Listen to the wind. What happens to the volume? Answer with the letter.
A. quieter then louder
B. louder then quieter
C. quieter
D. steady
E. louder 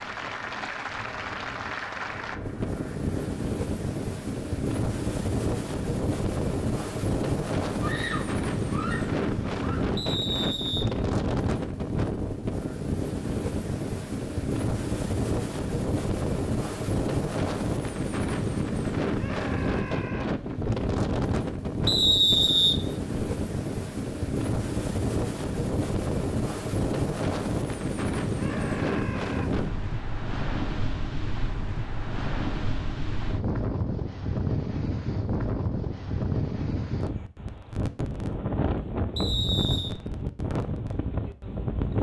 D.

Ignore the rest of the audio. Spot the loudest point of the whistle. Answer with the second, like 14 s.
22 s.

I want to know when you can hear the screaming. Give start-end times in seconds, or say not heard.
7.8-9.9, 19.1-20.4, 28.4-29.6.